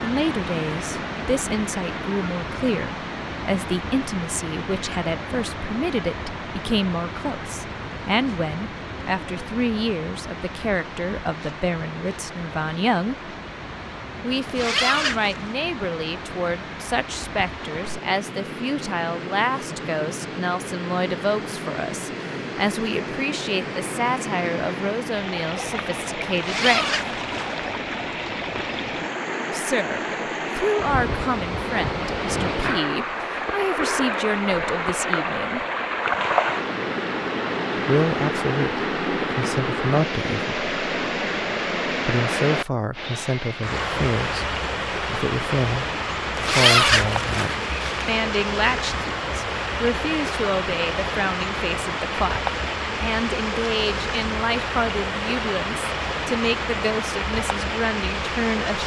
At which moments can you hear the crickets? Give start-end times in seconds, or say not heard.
not heard.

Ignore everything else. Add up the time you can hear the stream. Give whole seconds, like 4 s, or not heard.
59 s.